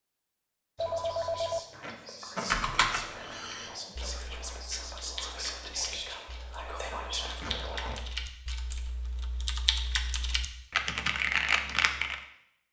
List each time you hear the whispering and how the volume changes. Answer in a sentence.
You can hear the whispering from 0.8 to 7.9 s, getting louder.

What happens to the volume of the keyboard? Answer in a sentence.
The volume of the keyboard goes down, then up.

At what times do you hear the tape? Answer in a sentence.
The tape can be heard from 1.5 to 2.5 s and from 7.4 to 8.0 s.